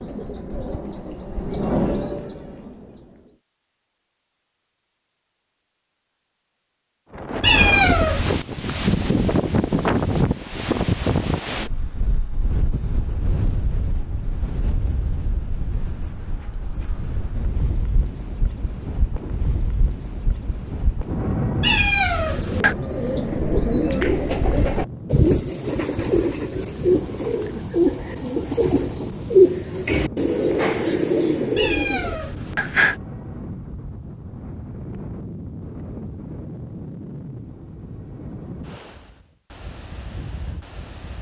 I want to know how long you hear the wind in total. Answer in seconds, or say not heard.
34 s.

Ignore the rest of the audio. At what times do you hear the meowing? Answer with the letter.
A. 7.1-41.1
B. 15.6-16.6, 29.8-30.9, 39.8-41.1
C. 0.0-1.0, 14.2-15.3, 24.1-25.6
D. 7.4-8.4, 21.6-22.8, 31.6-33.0
D.